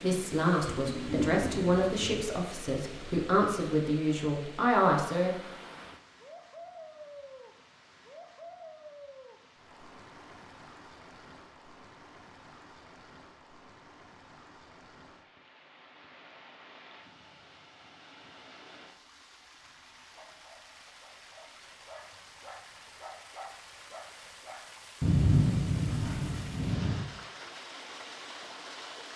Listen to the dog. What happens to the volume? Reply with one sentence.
The loudness of the dog goes up.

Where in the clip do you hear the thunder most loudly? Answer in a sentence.
The volume of the thunder peaks at 25 seconds.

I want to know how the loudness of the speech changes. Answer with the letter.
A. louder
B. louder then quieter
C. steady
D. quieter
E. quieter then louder
E.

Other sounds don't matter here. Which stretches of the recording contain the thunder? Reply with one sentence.
You can hear the thunder from 0.7 to 2.4 s and from 25.0 to 27.0 s.